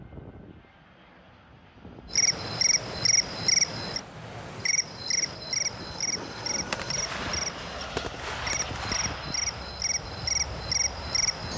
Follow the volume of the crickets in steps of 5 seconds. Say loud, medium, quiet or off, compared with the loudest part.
loud, medium, loud.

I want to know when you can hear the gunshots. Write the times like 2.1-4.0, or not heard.
6.0-9.6.